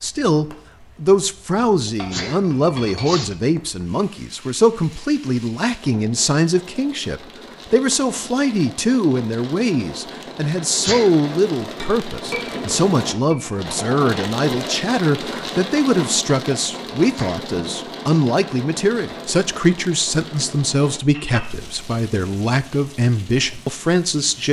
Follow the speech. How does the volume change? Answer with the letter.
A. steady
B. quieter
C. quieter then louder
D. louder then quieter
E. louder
A.